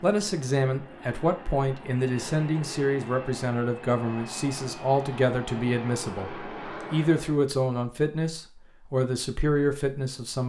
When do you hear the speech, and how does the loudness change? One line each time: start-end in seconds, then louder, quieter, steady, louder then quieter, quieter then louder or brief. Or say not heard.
0.0-10.4 steady.